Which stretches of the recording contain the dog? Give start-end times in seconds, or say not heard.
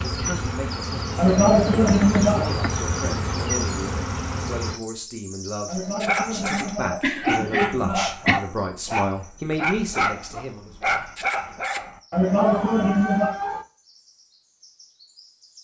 6.0-13.7.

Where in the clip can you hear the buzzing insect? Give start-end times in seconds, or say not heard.
0.0-4.8.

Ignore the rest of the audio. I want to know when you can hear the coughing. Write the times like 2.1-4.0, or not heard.
1.1-2.5, 5.7-8.4, 12.1-13.4.